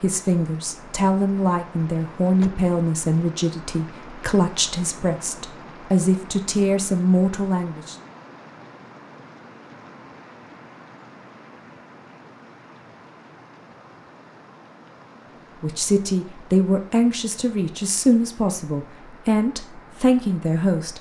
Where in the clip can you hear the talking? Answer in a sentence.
The talking can be heard from 0.0 to 8.0 s and from 15.6 to 20.9 s.